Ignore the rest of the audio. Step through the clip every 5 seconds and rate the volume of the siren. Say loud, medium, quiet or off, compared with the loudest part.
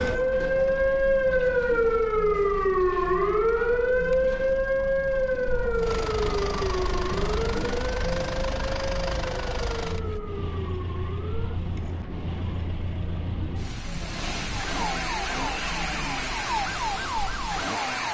loud, medium, quiet, medium.